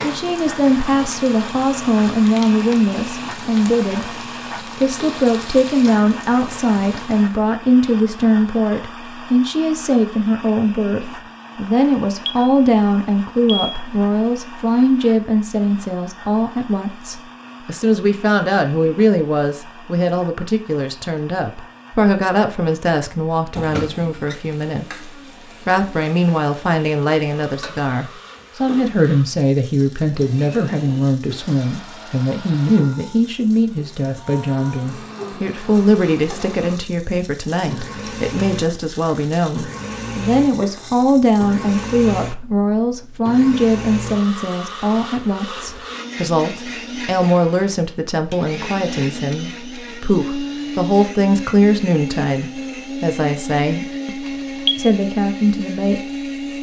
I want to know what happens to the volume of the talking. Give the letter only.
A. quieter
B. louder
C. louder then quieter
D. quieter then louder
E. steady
E.